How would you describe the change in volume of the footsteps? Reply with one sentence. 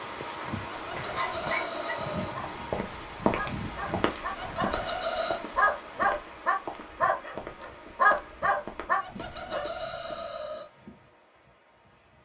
The volume of the footsteps goes down.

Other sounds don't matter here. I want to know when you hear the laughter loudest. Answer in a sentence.
The loudest moment of the laughter is at 5 seconds.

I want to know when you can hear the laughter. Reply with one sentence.
You can hear the laughter from 0.7 to 2.4 s, from 4.3 to 5.4 s and from 9.0 to 10.7 s.